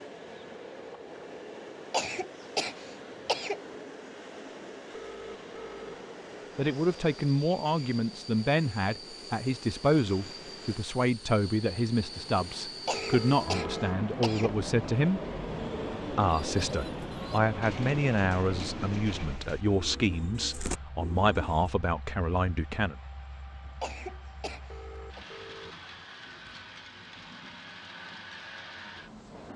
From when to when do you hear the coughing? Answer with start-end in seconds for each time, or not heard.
1.9-3.6, 12.8-14.6, 23.8-25.2.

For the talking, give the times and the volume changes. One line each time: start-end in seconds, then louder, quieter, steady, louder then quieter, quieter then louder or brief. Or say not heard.
6.5-15.2 steady
16.1-22.9 steady.